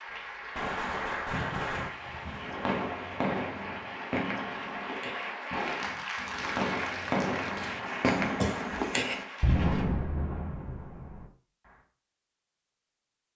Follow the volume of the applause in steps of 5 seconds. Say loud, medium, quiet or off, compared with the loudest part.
loud, loud, off.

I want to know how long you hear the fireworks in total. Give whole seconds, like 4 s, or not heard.
11 s.